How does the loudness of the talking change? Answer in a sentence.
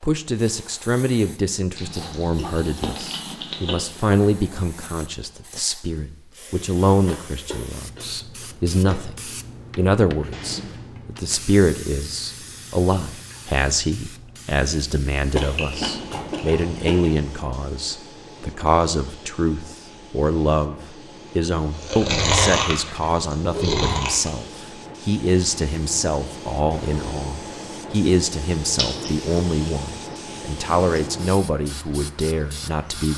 The volume of the talking stays about the same.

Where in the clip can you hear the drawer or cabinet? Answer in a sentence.
The drawer or cabinet can be heard from 10.3 to 11.0 s and from 26.7 to 27.3 s.